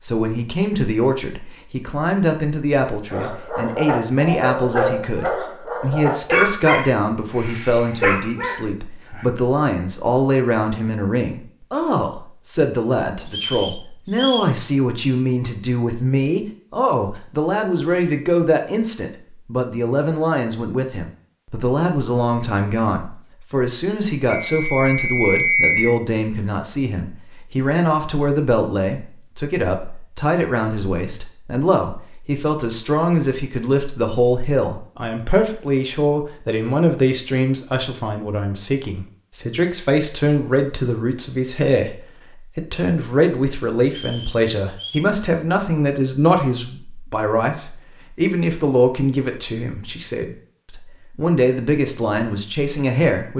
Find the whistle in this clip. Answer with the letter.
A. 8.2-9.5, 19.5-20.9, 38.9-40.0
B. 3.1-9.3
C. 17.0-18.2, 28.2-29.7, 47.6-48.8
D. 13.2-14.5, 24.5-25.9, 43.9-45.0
D.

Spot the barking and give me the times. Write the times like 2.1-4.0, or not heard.
3.1-9.3.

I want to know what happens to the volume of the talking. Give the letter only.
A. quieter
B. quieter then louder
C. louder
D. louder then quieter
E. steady
E.